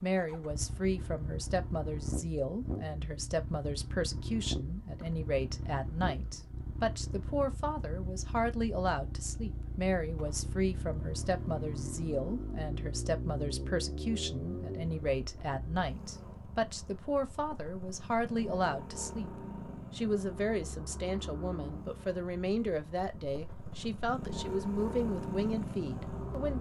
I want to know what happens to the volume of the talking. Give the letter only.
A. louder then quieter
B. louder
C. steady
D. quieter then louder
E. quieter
C.